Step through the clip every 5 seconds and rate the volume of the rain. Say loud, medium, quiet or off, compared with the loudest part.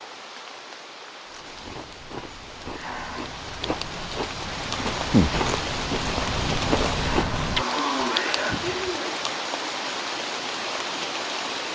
medium, loud, loud.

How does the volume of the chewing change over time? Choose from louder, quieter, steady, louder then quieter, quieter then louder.
louder.